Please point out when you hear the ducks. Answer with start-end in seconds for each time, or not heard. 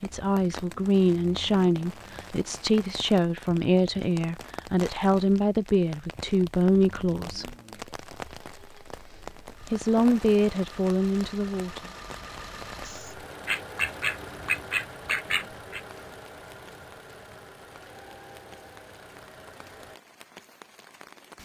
12.8-15.8.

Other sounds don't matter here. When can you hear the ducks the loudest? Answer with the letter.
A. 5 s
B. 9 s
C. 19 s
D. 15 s
D.